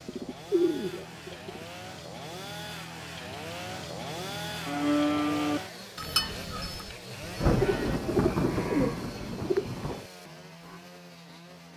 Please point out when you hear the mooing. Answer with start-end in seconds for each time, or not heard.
4.7-10.8.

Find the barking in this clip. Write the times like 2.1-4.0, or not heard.
not heard.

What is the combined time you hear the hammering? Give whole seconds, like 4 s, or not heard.
not heard.